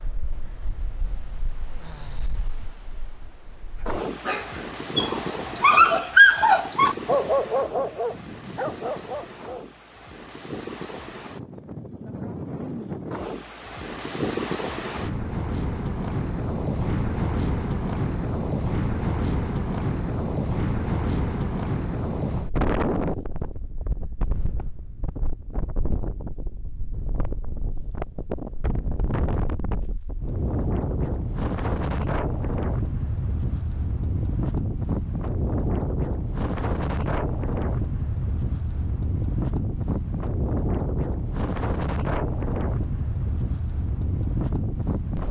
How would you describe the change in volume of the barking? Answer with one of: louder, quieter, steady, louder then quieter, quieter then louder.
louder then quieter.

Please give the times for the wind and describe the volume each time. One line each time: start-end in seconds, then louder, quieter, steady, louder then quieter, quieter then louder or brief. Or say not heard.
0.0-45.2 louder.